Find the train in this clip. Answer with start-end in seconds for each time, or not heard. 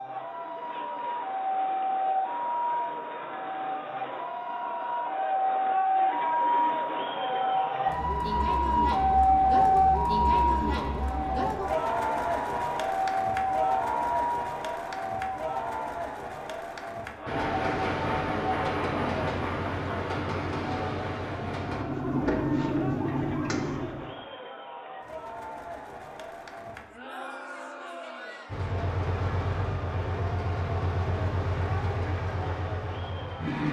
17.2-21.9, 28.4-33.6.